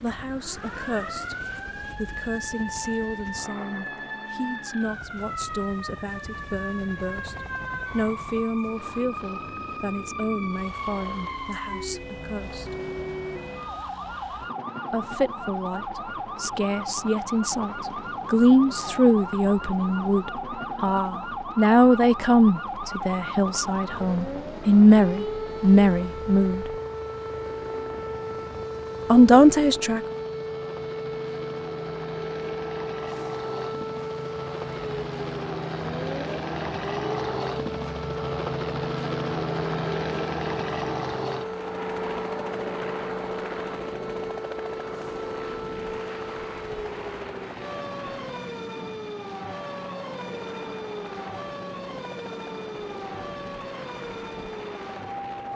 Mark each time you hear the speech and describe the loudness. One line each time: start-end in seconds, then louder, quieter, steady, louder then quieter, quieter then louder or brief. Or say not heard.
0.0-1.4 brief
1.9-12.7 steady
14.9-26.7 louder
29.1-30.0 brief.